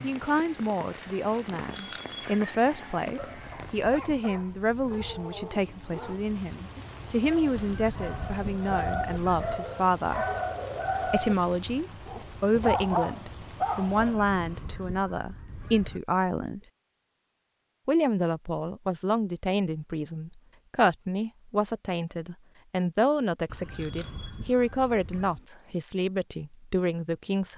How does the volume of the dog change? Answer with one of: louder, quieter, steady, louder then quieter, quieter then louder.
louder.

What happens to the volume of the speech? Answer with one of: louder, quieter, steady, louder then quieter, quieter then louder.
steady.